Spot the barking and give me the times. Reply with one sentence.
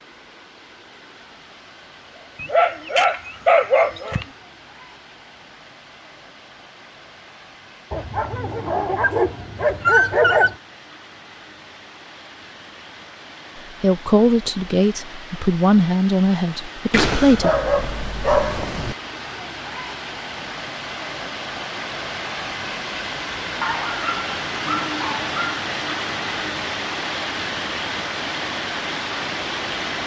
You can hear the barking from 2.4 to 4.2 s, from 7.9 to 10.6 s, from 16.9 to 18.9 s and from 23.6 to 25.6 s.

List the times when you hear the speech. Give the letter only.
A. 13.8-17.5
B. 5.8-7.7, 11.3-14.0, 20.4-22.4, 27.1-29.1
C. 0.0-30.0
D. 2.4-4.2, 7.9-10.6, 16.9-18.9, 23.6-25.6
A.